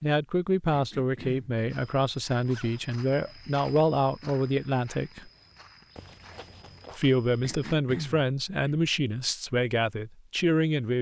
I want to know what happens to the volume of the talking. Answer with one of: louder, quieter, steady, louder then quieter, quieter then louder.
steady.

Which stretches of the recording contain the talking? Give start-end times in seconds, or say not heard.
0.0-5.3, 6.9-10.9.